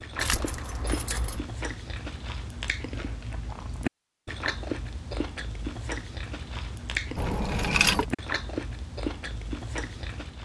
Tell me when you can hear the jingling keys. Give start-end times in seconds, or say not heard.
0.1-1.4, 7.2-8.1.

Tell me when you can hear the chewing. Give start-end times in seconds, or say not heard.
0.0-10.4.